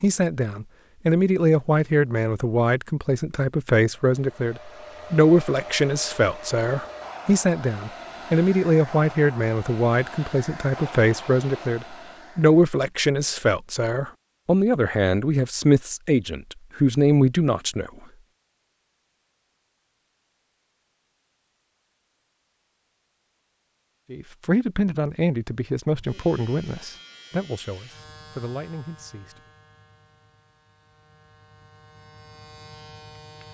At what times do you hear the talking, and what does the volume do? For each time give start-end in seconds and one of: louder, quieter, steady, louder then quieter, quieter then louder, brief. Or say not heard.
0.0-17.9 steady
24.1-29.4 quieter.